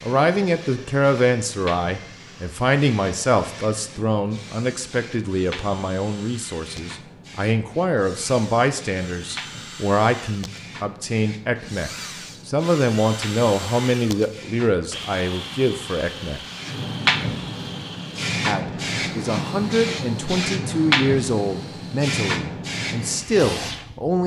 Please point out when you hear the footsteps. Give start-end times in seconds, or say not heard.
not heard.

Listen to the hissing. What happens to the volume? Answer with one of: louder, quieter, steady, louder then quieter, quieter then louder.
louder.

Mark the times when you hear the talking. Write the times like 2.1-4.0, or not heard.
0.0-16.4, 18.4-24.2.